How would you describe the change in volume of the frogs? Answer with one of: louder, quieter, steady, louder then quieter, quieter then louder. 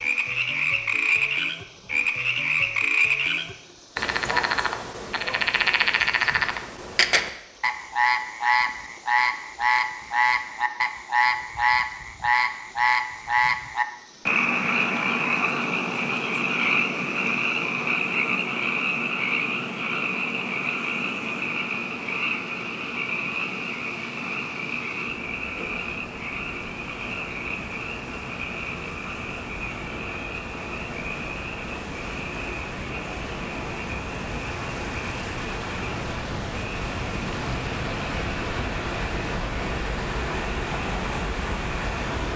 quieter.